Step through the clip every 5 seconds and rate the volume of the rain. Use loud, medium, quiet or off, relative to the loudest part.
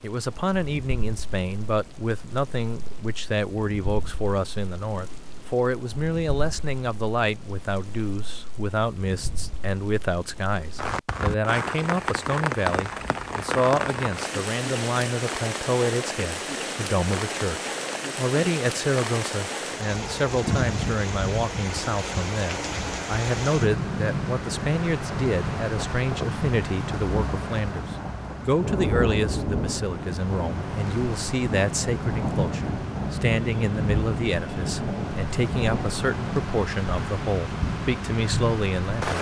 quiet, quiet, loud, loud, loud, loud, loud, loud.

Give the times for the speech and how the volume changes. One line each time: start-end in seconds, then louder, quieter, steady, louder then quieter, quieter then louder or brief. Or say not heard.
0.0-39.1 steady.